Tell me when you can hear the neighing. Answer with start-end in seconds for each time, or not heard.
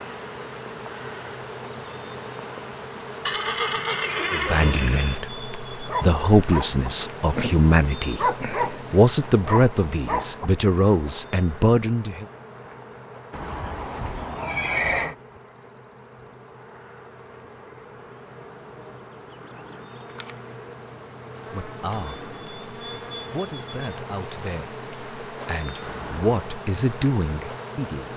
3.2-5.2, 13.3-15.2, 25.8-26.6.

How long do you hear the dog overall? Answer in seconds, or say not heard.
5 s.